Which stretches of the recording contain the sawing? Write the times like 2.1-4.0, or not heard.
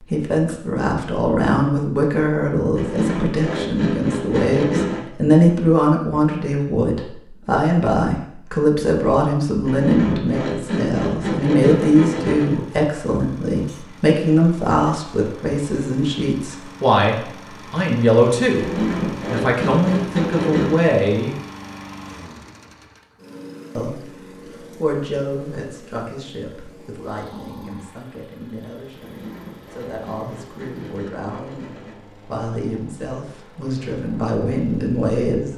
2.8-5.0, 9.7-12.6, 18.6-20.9, 29.0-32.0.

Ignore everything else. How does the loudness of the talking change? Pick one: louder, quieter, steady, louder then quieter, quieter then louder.
quieter.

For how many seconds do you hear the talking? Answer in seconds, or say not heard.
33 s.